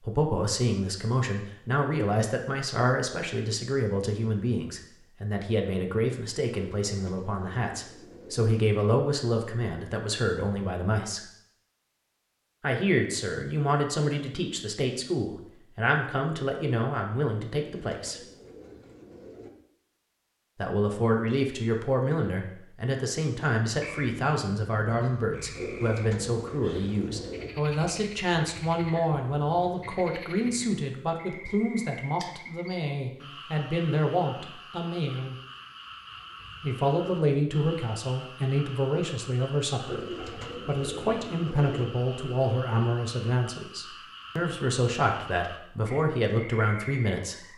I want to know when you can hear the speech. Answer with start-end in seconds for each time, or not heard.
0.0-11.2, 12.6-18.2, 20.6-35.4, 36.6-47.5.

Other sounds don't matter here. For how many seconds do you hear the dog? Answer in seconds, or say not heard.
not heard.